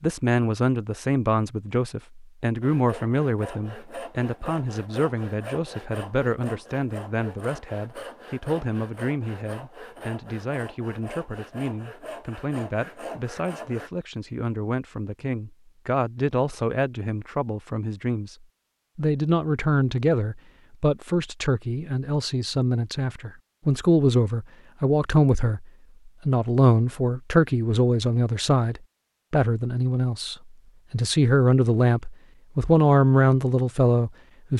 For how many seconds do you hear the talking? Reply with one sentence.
The talking can be heard for 34 seconds in total.